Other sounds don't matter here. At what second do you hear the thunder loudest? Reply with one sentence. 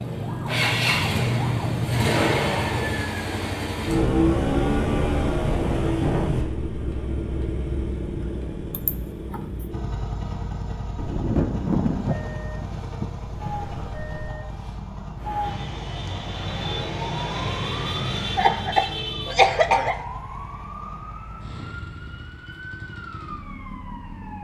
The loudest moment of the thunder is at 12 seconds.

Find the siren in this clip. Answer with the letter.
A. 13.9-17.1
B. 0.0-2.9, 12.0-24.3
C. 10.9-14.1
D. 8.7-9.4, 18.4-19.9
B.